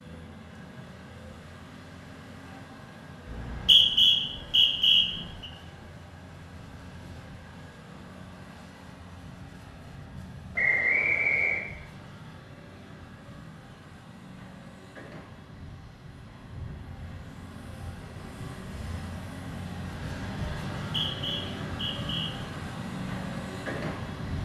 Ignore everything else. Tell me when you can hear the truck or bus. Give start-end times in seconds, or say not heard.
0.0-24.4.